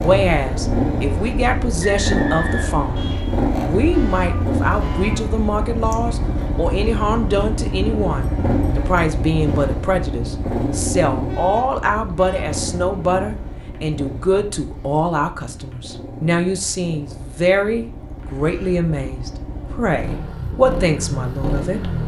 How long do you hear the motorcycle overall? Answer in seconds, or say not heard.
22 s.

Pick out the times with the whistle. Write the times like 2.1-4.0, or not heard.
1.8-3.2.